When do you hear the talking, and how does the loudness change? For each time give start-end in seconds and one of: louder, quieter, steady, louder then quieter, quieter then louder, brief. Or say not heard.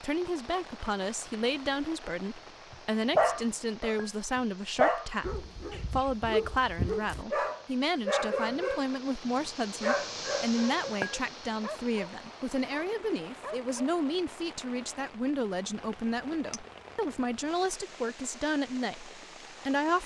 0.0-20.0 steady.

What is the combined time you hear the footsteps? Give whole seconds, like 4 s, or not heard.
not heard.